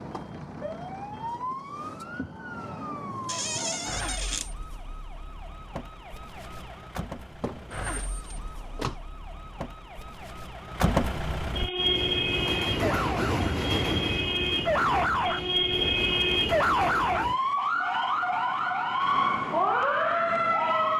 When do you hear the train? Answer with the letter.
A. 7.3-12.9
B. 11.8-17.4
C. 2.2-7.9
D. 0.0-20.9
B.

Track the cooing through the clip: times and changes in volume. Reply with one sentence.
The cooing can't be heard in this clip.